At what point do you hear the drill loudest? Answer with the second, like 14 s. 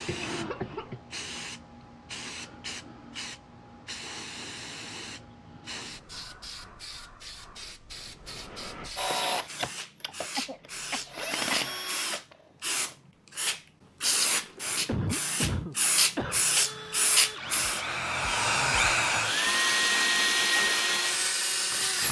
20 s.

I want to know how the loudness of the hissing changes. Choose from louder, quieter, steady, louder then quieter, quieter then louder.
louder.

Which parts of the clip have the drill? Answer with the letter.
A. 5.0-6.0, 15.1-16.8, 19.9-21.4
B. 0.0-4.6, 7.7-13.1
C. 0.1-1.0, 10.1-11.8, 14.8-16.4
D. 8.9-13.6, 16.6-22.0
D.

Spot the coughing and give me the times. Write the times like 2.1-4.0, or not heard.
0.1-1.0, 10.1-11.8, 14.8-16.4.